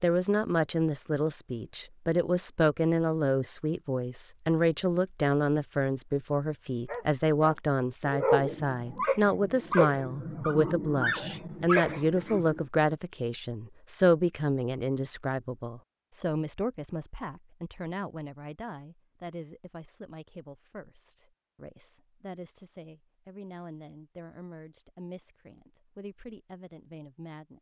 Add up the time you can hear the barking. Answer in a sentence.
The barking can be heard for 6 seconds in total.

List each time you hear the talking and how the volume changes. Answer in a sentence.
The talking can be heard from 0.0 to 27.5 s, getting quieter.